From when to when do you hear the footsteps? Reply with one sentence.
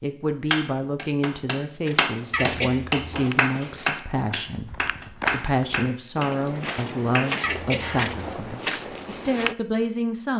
You can hear the footsteps from 1.9 to 9.6 s.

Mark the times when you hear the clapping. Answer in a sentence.
The clapping can be heard from 0.5 to 8.1 s.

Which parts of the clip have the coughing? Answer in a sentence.
The coughing can be heard from 2.3 to 3.3 s and from 7.4 to 8.4 s.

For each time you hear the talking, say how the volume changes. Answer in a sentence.
The talking can be heard from 0.0 to 10.3 s, at a steady volume.